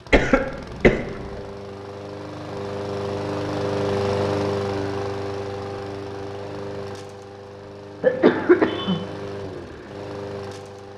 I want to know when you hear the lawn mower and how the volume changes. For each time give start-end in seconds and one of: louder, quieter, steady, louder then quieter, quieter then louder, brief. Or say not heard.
0.0-10.9 louder then quieter.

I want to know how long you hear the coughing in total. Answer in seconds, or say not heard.
2 s.